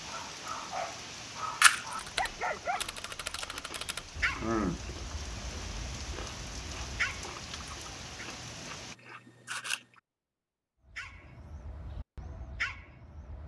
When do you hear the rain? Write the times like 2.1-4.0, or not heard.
0.0-8.9.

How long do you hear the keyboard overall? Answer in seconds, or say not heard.
2 s.